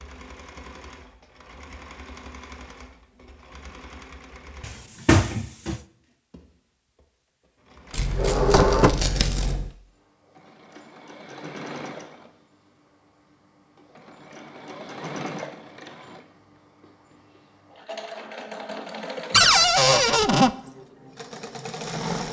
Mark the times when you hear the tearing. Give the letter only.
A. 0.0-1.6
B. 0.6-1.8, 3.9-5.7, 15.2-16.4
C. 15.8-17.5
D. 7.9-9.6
D.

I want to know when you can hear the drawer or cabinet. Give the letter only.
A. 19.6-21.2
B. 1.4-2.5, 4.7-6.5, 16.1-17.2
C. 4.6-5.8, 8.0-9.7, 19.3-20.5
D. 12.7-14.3
C.